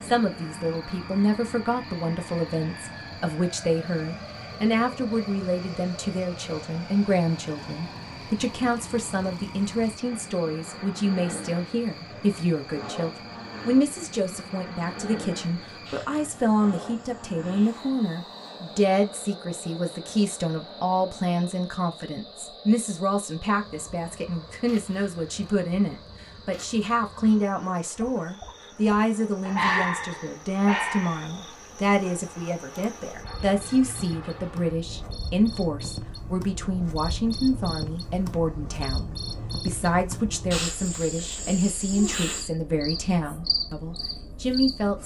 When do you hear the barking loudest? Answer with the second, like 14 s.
30 s.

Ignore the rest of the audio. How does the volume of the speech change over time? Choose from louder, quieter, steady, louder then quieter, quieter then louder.
steady.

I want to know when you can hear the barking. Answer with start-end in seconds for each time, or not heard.
29.4-31.2.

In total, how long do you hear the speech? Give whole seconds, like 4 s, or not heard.
45 s.